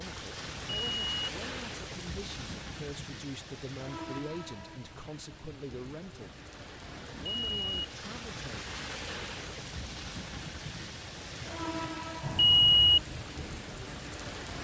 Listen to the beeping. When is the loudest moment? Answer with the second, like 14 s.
13 s.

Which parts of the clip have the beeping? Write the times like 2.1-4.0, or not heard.
0.7-1.3, 7.1-7.8, 12.2-13.0.